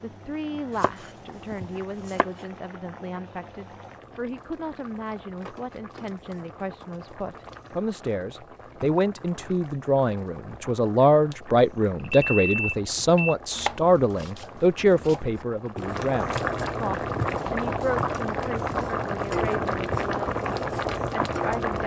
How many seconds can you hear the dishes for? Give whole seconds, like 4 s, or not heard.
not heard.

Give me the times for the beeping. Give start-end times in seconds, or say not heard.
11.9-13.3.